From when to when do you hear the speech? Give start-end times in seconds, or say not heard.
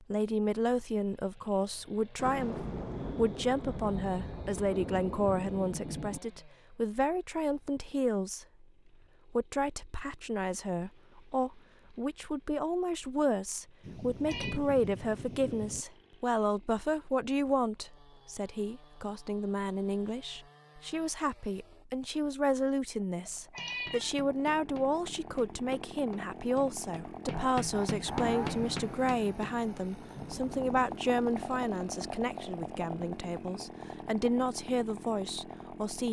0.0-8.7, 9.2-36.0.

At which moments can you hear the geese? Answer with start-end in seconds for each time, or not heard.
not heard.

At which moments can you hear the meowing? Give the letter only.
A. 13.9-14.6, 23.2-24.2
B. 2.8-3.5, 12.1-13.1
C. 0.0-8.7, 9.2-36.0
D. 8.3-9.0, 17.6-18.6
A.